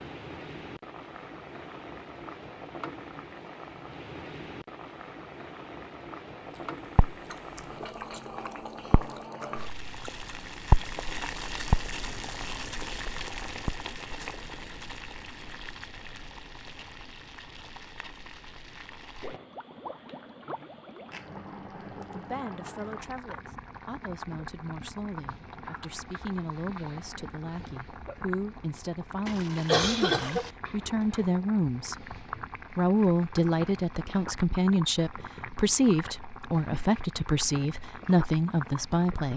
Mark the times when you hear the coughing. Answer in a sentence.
You can hear the coughing from 29.2 to 30.5 s.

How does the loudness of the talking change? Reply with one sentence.
The loudness of the talking goes up.